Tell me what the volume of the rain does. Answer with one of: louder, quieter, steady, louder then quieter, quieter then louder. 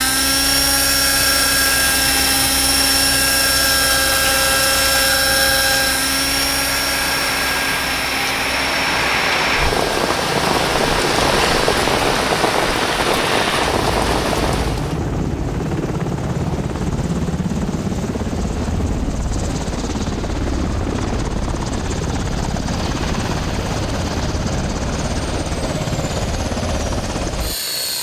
louder.